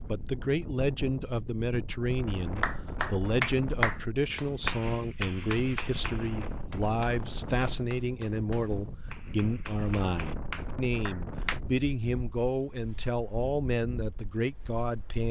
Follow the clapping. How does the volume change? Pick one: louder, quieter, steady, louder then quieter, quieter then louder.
quieter then louder.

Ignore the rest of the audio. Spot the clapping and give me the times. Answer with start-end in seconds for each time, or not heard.
2.6-11.6.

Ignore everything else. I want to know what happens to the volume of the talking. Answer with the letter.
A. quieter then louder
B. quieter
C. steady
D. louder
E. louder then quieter
C.